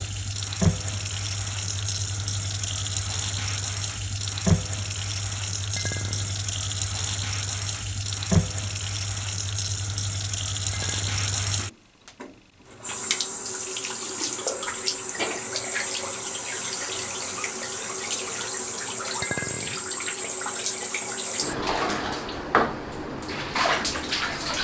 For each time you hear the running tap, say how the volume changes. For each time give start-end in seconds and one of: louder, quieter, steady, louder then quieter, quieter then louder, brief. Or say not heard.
0.0-24.5 steady.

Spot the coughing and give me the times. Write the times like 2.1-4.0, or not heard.
not heard.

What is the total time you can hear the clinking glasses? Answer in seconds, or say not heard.
2 s.